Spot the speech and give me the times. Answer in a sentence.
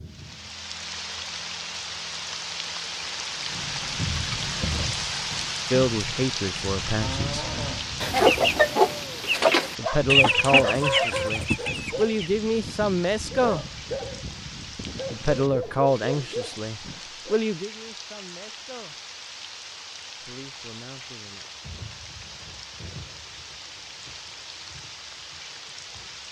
You can hear the speech from 5.7 to 7.5 s, from 9.8 to 13.7 s, from 15.1 to 18.9 s and from 20.2 to 21.4 s.